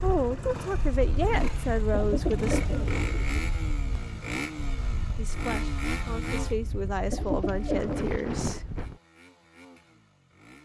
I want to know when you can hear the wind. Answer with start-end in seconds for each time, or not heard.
0.0-9.0.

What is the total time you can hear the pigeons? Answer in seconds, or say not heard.
3 s.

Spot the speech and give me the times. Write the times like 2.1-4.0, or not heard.
0.0-2.6, 5.2-8.7.